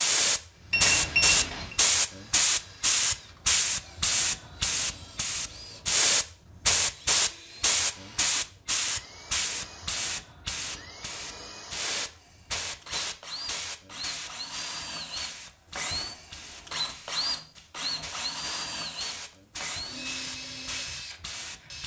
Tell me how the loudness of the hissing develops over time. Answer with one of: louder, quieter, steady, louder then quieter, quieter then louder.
quieter.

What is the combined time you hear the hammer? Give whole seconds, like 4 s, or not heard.
not heard.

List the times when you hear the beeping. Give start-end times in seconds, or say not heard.
0.7-1.8.